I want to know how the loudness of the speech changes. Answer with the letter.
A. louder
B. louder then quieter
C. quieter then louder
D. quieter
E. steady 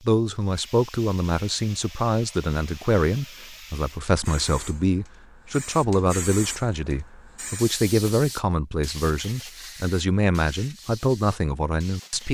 E.